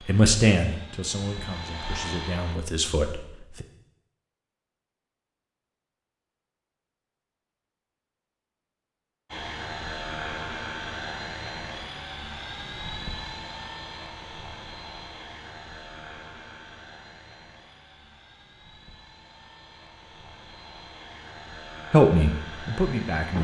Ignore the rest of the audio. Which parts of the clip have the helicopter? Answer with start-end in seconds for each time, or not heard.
0.0-2.6, 9.2-23.3.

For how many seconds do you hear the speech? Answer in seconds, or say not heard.
5 s.